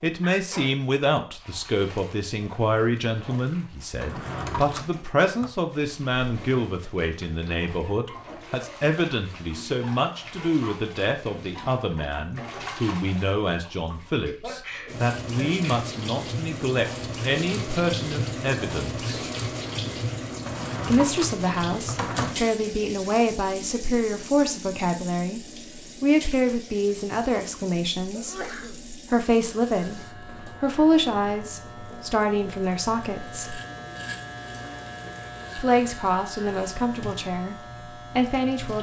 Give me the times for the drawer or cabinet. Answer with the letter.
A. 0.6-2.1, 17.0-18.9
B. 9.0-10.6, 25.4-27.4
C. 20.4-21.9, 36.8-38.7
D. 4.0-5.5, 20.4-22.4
D.